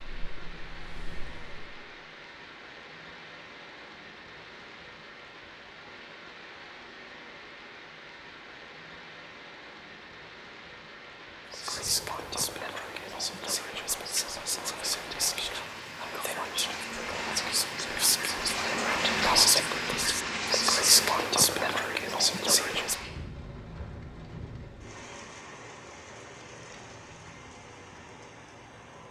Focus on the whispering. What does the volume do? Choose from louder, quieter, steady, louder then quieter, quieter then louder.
louder.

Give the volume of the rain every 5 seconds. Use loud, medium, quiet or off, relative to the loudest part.
quiet, quiet, medium, loud, loud, quiet.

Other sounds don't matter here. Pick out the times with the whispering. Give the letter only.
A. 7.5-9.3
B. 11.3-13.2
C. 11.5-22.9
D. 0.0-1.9
C.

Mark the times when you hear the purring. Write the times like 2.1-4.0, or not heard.
0.0-1.9.